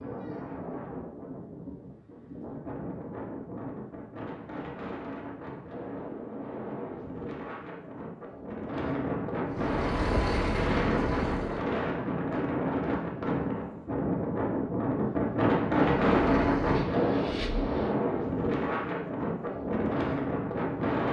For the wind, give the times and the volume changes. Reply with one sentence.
You can hear the wind from 0.0 to 21.0 s, getting louder.